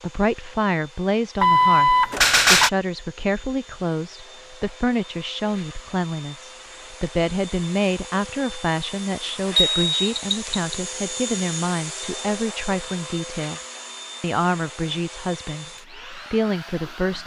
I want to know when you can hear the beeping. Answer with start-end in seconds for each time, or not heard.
1.4-2.7, 9.6-10.8.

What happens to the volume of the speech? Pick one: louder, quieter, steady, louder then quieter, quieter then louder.
steady.